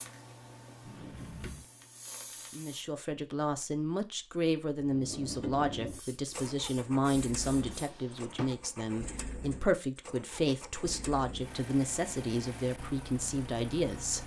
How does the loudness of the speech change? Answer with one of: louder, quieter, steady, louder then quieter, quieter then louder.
steady.